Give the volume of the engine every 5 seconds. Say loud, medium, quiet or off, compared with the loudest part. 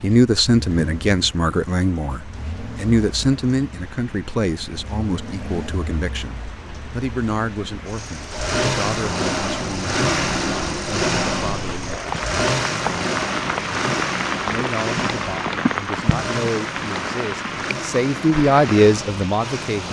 quiet, loud, loud, medium.